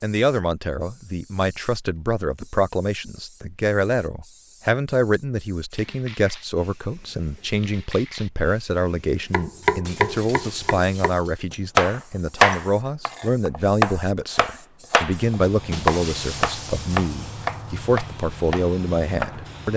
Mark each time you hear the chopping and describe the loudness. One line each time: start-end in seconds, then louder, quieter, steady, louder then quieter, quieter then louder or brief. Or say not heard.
9.3-19.6 louder then quieter.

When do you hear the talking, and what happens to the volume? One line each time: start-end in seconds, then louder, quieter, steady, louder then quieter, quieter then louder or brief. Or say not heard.
0.0-19.7 steady.